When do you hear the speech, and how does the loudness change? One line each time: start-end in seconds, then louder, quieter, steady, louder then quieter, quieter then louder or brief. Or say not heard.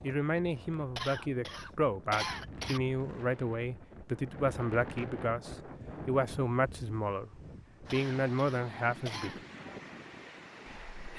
0.0-9.3 steady
10.7-11.1 brief.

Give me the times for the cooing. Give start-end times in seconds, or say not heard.
not heard.